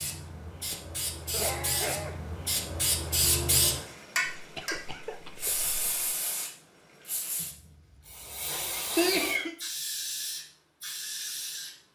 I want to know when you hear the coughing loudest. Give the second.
9 s.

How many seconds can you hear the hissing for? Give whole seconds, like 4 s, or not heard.
12 s.